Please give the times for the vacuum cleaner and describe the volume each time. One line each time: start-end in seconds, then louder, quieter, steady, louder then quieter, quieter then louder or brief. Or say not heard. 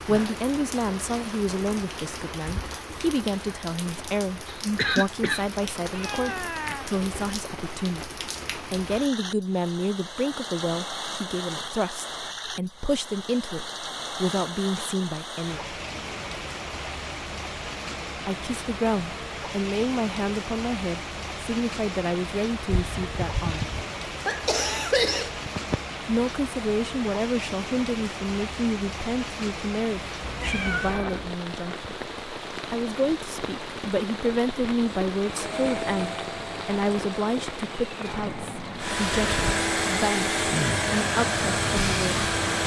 35.1-42.6 quieter then louder.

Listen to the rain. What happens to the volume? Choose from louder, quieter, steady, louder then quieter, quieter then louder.
steady.